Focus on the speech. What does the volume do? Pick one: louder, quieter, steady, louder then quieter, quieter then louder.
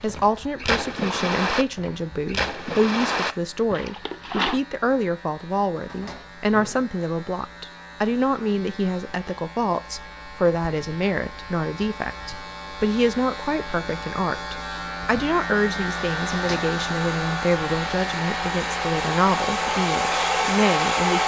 steady.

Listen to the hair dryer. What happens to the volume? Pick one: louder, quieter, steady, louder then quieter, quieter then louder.
louder.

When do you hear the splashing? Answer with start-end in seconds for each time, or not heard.
0.0-4.6.